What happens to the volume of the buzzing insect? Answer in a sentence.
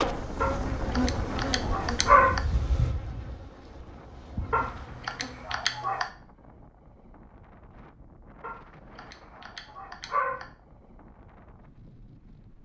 The volume of the buzzing insect goes down, then up.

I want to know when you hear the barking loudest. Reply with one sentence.
The volume of the barking peaks at 2 seconds.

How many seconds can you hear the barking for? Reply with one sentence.
You can hear the barking for 6 seconds altogether.